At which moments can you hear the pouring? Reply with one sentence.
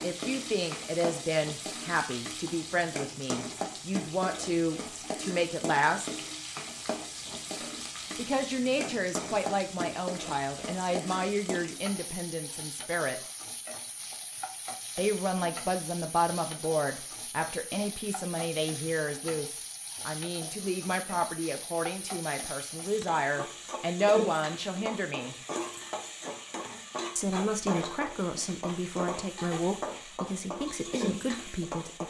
The pouring can't be heard in this clip.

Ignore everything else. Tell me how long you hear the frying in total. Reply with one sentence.
The frying can be heard for 32 seconds in total.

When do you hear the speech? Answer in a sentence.
You can hear the speech from 0.0 to 6.2 s, from 8.2 to 13.2 s, from 14.9 to 25.4 s and from 27.1 to 32.0 s.